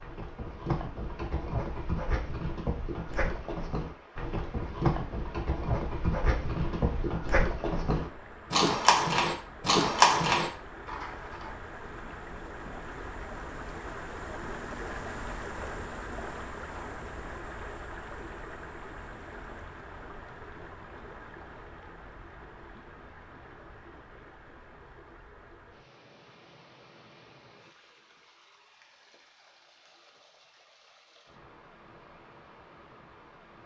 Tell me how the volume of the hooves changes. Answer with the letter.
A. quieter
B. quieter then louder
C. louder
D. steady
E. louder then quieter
C.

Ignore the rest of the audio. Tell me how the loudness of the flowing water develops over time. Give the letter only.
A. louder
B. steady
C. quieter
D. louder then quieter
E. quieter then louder
D.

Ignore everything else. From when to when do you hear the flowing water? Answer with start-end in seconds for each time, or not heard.
0.0-33.6.